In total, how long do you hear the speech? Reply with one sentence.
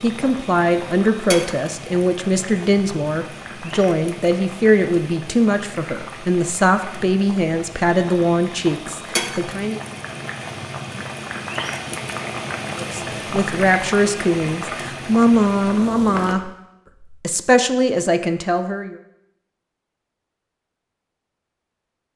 The speech can be heard for 15 seconds in total.